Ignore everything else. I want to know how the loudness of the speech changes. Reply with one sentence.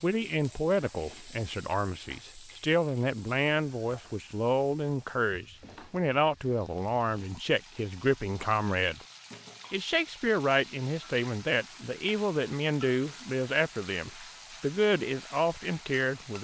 The volume of the speech stays about the same.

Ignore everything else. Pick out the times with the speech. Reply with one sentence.
You can hear the speech from 0.0 to 9.0 s and from 9.7 to 16.3 s.